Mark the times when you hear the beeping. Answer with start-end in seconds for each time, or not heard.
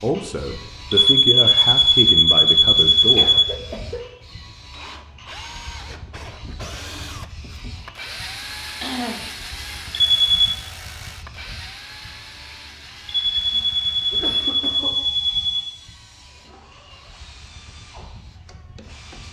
0.9-3.5, 10.0-10.6, 13.1-15.7.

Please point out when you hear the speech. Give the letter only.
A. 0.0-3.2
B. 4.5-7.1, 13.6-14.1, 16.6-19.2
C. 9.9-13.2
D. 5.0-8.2
A.